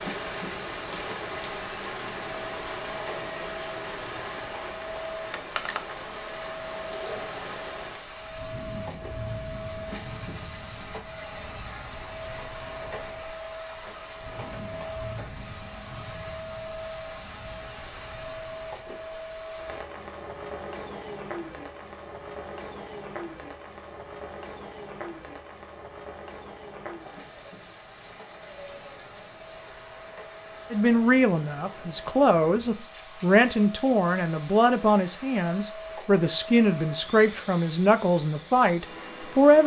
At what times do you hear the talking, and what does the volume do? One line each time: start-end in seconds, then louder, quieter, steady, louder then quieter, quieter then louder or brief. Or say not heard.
30.7-39.6 steady.